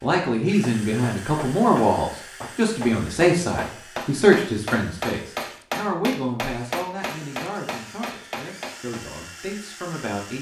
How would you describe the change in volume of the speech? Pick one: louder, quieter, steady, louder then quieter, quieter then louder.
quieter.